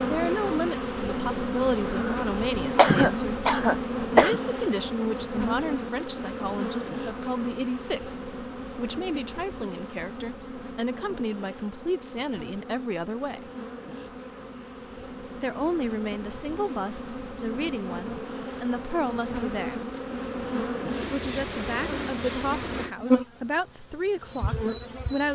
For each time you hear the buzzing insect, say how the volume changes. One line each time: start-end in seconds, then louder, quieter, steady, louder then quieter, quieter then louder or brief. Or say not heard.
0.0-25.3 quieter then louder.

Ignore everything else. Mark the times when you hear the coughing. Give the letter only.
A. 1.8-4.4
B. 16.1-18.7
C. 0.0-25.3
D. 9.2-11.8
A.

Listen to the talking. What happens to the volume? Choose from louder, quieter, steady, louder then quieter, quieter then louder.
steady.